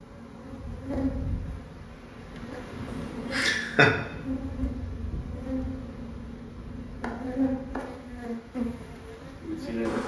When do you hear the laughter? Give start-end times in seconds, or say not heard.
2.9-4.0.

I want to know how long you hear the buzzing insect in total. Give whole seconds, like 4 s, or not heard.
10 s.